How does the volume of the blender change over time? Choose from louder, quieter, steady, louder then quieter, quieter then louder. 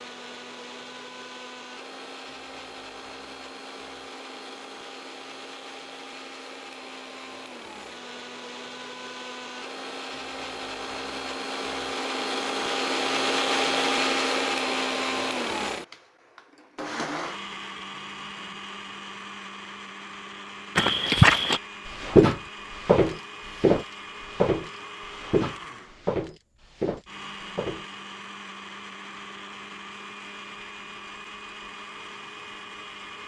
louder then quieter.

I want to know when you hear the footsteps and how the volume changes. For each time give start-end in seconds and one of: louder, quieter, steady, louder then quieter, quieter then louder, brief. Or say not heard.
20.8-27.9 quieter.